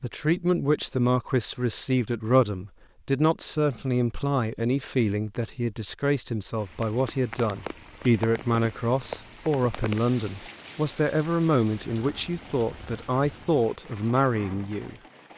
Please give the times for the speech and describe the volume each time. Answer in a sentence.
The speech can be heard from 0.0 to 14.9 s, at a steady volume.